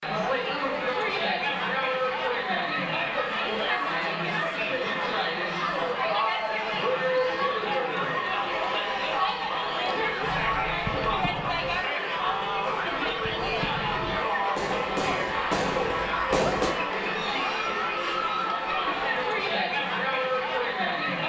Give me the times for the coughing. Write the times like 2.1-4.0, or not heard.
not heard.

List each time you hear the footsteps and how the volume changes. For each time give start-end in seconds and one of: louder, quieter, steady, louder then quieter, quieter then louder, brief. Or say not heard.
not heard.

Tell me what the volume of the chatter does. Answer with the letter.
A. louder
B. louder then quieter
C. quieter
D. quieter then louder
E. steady
E.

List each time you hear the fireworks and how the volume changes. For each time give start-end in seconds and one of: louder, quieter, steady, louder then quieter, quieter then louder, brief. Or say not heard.
10.2-16.8 quieter then louder.